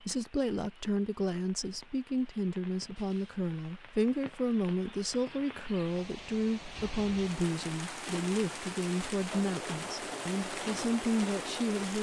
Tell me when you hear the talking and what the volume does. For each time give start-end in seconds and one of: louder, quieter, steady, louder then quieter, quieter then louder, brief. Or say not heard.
0.0-11.9 steady.